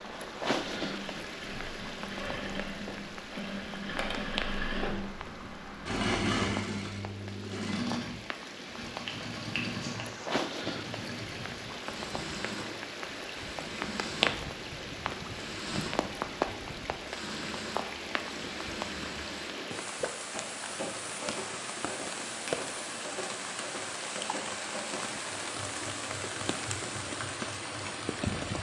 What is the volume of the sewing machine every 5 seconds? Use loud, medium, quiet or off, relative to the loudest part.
loud, loud, medium, medium, medium, medium.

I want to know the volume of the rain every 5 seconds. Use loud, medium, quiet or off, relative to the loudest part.
loud, medium, loud, loud, loud, loud.